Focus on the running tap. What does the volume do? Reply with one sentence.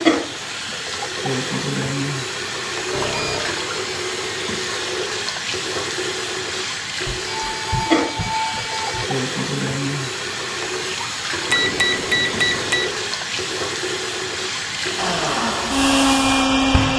The loudness of the running tap stays about the same.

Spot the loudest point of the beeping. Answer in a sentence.
The volume of the beeping peaks at 12 seconds.